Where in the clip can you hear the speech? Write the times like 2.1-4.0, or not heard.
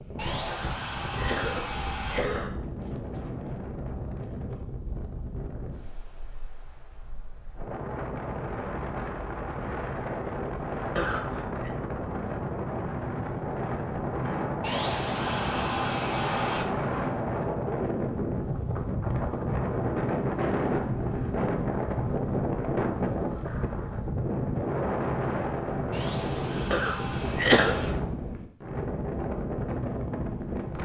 not heard.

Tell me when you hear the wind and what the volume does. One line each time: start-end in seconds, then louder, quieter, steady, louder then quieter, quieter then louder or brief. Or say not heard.
0.0-30.8 louder.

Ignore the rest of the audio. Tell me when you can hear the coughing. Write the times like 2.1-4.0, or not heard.
0.5-2.5, 10.9-11.7, 26.7-27.8.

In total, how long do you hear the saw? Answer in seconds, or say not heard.
6 s.